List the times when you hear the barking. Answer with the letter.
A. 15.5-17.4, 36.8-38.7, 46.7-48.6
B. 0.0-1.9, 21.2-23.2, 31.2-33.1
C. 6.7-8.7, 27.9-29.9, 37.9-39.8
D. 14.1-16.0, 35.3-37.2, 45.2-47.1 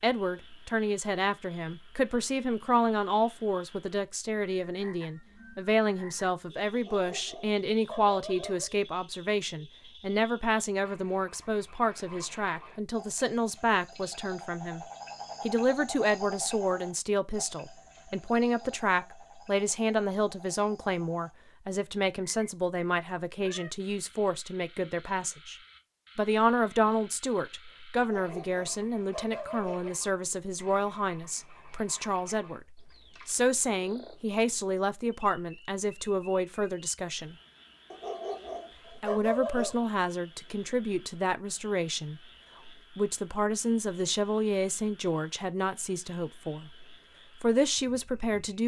C.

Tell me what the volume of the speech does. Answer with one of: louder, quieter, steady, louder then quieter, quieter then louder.
steady.